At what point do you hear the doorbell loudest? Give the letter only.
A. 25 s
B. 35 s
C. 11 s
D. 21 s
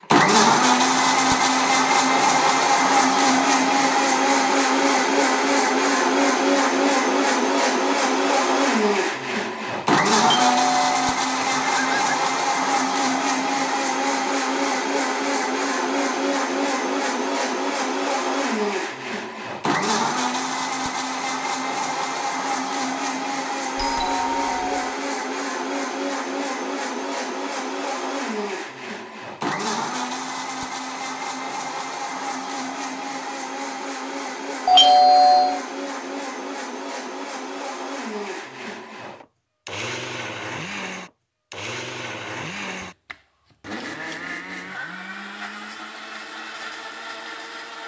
B.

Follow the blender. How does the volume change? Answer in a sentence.
The loudness of the blender goes down.